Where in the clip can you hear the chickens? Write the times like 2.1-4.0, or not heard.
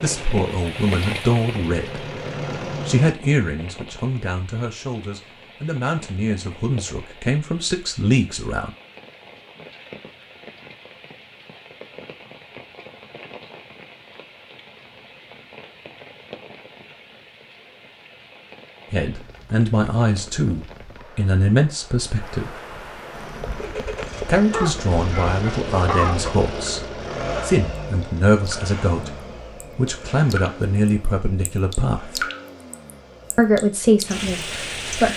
24.5-26.3.